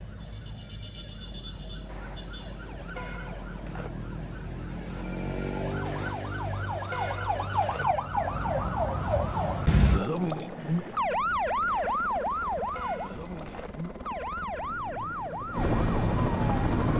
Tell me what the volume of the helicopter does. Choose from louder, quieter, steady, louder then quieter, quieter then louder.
louder.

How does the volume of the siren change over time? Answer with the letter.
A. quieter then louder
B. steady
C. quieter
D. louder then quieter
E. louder
D.